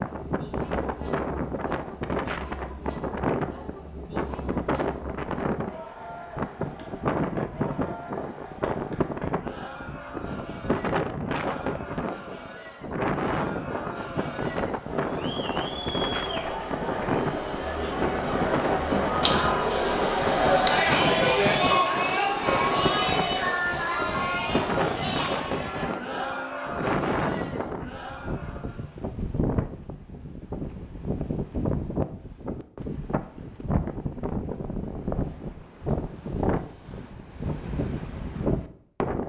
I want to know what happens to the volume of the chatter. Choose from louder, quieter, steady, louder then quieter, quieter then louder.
louder then quieter.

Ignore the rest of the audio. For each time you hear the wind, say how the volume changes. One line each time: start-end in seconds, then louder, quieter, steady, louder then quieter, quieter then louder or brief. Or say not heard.
0.0-39.2 steady.